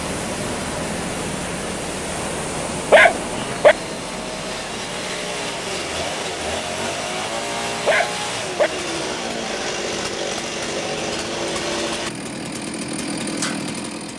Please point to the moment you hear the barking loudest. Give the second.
3 s.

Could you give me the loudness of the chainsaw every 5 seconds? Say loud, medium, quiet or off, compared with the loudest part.
medium, loud, loud.